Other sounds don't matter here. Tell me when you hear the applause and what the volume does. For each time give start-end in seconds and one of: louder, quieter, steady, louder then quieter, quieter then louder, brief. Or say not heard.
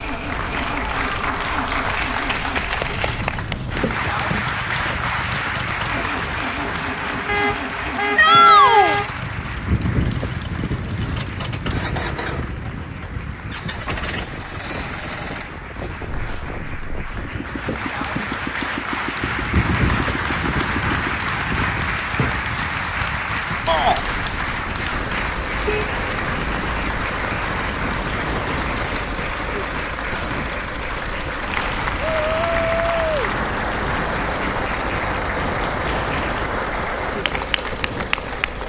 0.0-38.6 quieter then louder.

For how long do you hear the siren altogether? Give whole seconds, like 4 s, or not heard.
not heard.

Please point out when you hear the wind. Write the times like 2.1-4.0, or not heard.
0.0-38.6.